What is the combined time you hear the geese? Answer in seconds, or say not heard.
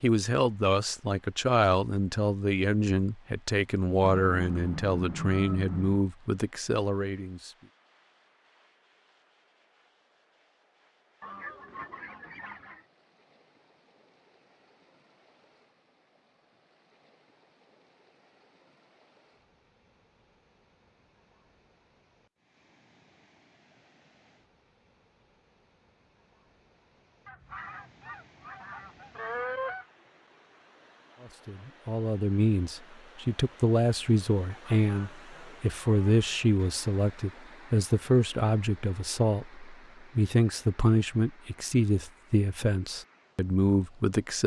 8 s.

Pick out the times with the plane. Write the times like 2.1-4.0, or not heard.
not heard.